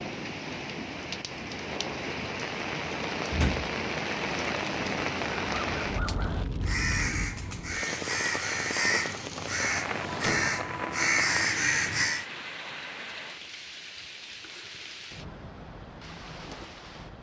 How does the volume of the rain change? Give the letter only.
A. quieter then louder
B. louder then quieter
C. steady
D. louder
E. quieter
E.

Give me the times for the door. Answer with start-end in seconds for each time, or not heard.
3.3-3.7, 8.8-10.6.